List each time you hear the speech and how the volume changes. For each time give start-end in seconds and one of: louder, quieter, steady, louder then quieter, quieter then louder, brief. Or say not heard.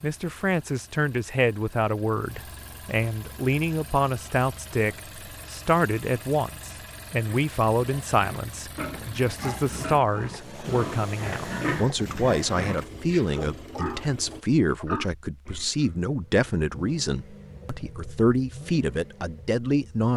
0.0-20.1 steady.